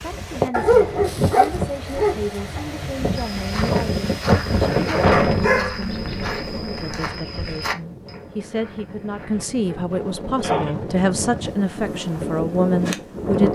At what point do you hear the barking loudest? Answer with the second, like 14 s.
1 s.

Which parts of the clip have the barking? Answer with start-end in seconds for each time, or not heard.
0.5-2.6, 5.1-7.0, 9.3-10.7.